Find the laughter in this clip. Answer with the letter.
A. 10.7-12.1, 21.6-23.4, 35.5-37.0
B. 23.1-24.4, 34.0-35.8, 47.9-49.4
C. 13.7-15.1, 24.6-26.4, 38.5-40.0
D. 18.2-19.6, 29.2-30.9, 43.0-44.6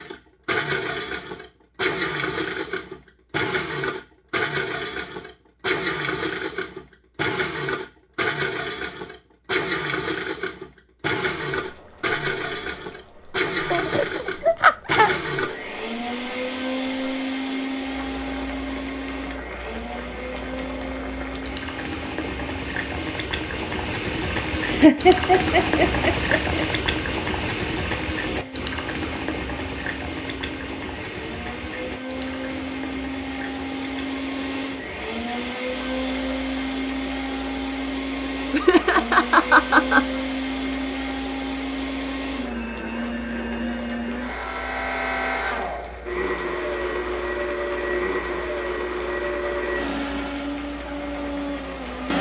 C.